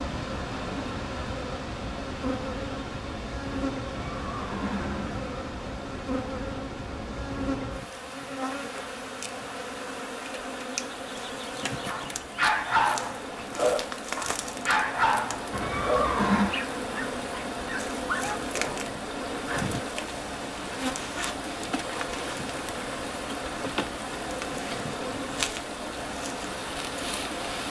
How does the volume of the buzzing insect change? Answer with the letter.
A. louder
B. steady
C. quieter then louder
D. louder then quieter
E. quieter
B.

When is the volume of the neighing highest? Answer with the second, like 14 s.
16 s.